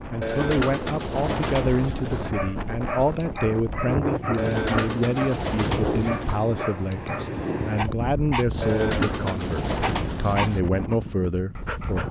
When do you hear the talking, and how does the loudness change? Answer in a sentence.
The talking can be heard from 0.0 to 12.0 s, at a steady volume.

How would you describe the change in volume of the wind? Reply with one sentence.
The volume of the wind stays about the same.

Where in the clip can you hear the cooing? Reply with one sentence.
The cooing can be heard from 0.2 to 2.2 s, from 4.3 to 6.4 s and from 8.6 to 10.6 s.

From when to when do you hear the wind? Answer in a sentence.
The wind can be heard from 0.0 to 12.0 s.